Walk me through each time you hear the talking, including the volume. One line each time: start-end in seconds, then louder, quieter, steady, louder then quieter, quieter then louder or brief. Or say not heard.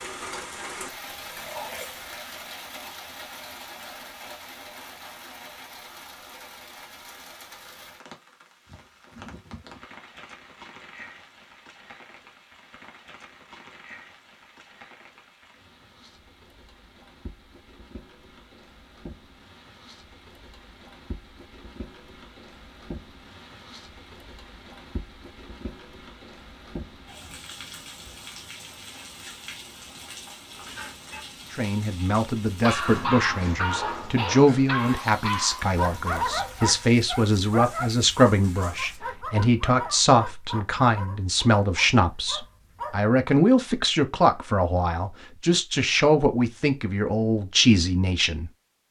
31.5-48.8 steady.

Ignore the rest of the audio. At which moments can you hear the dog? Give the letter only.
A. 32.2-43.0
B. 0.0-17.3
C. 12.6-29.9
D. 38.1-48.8
A.